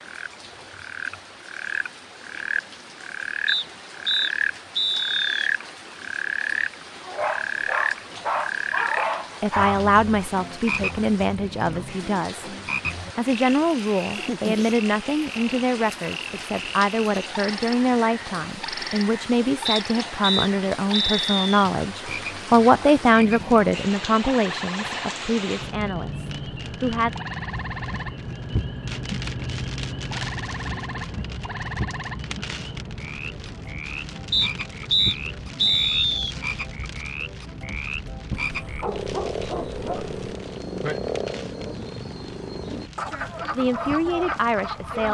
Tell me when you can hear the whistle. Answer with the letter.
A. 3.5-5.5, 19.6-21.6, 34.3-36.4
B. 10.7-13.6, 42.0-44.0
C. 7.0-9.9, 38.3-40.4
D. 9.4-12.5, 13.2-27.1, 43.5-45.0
A.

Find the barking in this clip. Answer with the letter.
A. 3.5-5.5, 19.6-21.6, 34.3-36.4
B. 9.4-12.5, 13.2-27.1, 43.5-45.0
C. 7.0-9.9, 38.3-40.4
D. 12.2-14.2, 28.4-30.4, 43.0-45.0
C.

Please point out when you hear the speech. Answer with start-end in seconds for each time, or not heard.
9.4-12.5, 13.2-27.1, 43.5-45.0.